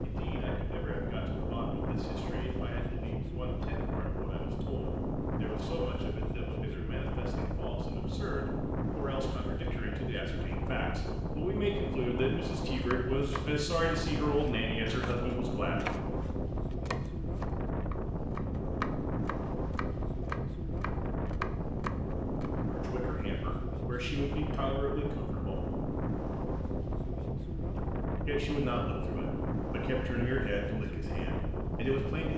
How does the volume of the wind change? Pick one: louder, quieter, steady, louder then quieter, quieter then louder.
steady.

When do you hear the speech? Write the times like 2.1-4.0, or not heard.
0.0-15.9, 22.6-25.6, 28.2-32.3.